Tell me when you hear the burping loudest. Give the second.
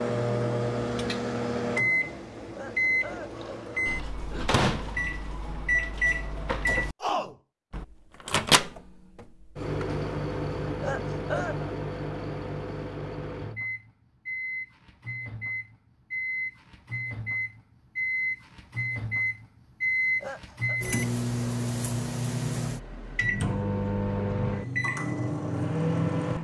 11 s.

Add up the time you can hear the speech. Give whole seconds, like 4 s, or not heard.
not heard.